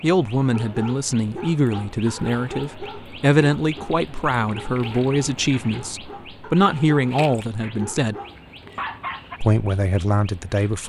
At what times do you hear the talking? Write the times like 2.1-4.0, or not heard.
0.0-8.2, 9.4-10.8.